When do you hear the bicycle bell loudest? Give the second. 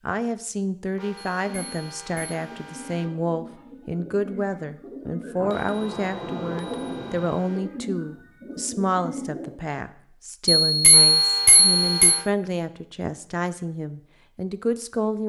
11 s.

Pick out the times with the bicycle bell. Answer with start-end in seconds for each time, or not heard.
1.4-2.4, 5.4-7.4, 10.7-12.2.